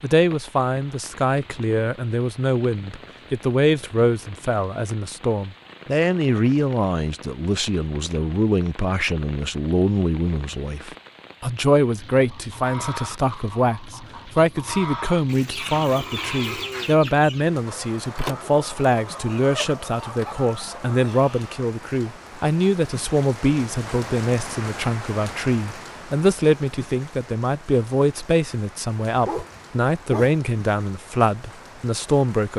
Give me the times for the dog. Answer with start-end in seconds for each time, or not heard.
29.1-30.4.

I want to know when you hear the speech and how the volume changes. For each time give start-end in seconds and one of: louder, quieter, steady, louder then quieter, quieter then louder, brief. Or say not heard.
0.0-32.5 steady.